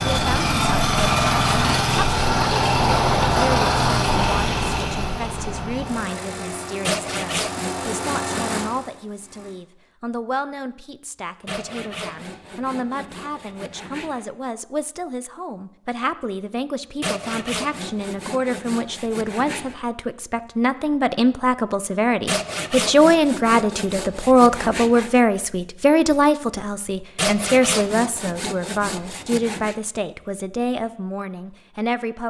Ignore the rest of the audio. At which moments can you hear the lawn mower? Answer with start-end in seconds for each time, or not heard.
0.0-9.5.